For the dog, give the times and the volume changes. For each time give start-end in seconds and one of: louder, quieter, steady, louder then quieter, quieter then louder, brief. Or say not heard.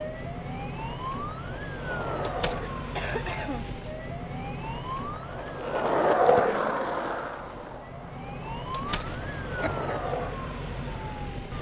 not heard.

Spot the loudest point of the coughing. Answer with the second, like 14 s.
3 s.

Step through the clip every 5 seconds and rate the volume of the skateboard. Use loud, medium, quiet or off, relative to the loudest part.
medium, loud, medium.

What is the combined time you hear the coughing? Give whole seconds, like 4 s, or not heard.
3 s.